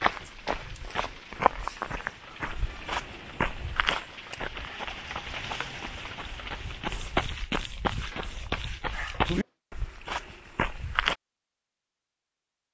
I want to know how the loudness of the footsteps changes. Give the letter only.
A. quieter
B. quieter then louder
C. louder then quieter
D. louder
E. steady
B.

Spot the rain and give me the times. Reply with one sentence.
You can hear the rain from 0.0 to 7.2 s.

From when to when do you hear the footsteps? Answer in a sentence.
You can hear the footsteps from 0.0 to 11.2 s.